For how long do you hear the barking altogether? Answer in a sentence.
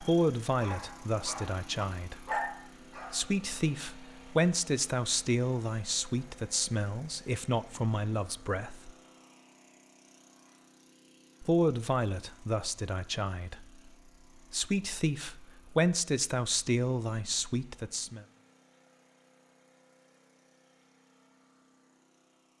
You can hear the barking for 3 seconds altogether.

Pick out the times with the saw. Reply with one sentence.
You can't hear the saw here.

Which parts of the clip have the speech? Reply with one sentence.
You can hear the speech from 0.0 to 2.4 s, from 3.1 to 8.9 s and from 11.4 to 18.2 s.